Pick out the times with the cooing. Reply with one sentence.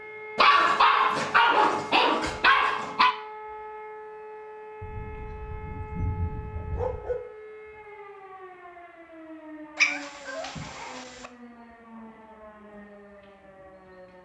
The cooing can't be heard in this clip.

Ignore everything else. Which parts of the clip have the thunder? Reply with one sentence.
You can hear the thunder from 4.8 to 7.0 s.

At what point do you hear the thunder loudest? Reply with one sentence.
The volume of the thunder peaks at 6 seconds.